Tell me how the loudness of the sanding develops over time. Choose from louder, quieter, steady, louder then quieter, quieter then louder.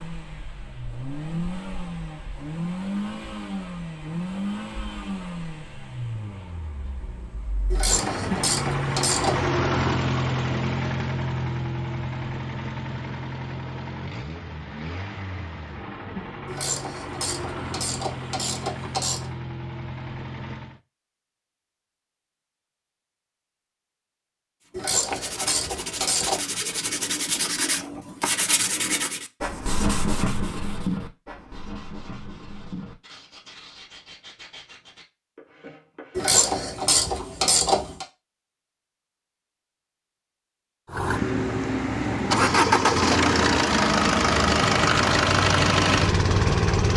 quieter.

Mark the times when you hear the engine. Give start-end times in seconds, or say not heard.
0.0-20.8, 40.9-46.9.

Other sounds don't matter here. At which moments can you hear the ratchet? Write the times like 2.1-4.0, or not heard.
7.7-9.4, 16.4-19.3, 24.8-26.4, 36.1-38.0.